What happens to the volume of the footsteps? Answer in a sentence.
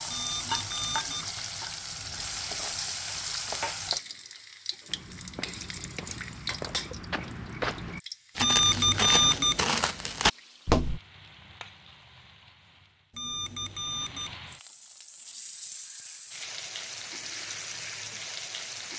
The loudness of the footsteps goes up.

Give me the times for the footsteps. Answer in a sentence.
You can hear the footsteps from 4.8 to 11.0 s.